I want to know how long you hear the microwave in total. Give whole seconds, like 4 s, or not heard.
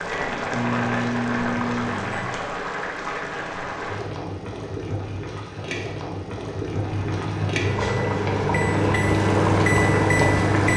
6 s.